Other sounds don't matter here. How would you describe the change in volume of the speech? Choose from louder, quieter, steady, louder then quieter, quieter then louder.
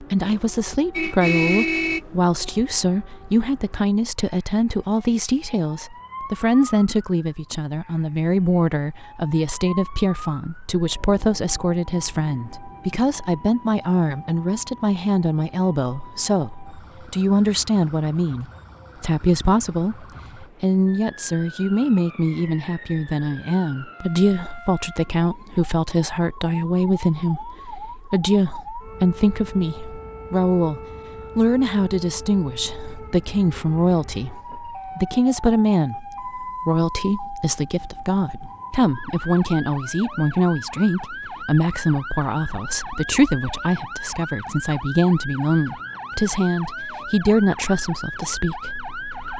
steady.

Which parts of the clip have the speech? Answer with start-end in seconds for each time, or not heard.
0.0-49.3.